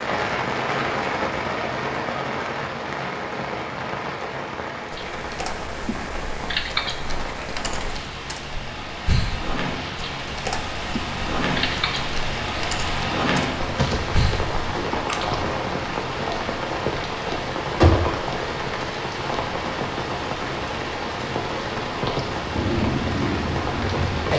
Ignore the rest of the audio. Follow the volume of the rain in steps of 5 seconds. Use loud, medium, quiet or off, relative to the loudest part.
loud, medium, loud, loud, loud.